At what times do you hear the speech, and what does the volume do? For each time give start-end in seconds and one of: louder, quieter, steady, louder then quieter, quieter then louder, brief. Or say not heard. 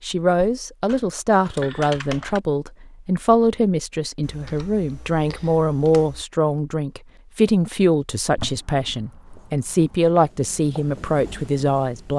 0.0-12.1 steady.